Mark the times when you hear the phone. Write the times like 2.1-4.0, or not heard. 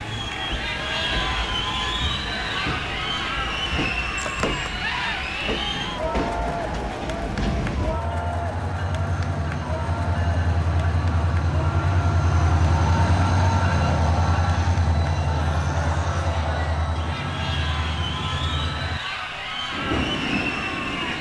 4.2-4.8.